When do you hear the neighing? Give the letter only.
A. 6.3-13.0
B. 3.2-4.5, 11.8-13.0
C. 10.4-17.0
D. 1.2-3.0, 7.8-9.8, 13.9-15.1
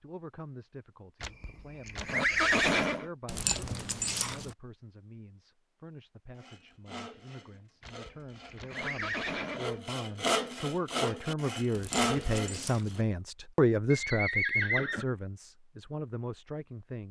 D.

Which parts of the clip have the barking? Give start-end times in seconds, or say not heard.
3.2-4.5, 11.8-13.0.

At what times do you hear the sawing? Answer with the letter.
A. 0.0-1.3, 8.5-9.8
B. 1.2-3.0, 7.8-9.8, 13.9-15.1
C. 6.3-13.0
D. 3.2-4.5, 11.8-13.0
C.